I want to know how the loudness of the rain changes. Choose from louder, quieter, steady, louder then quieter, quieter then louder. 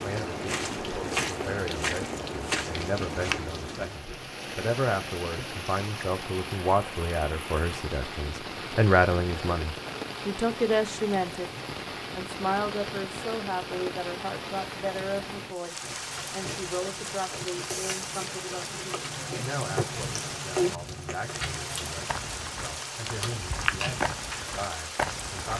steady.